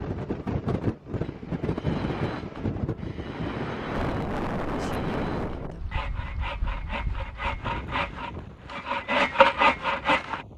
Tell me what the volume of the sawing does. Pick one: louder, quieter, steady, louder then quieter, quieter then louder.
louder.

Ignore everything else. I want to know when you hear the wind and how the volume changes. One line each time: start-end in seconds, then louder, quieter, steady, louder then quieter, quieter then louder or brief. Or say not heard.
0.0-10.5 quieter.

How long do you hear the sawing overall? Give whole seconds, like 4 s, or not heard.
9 s.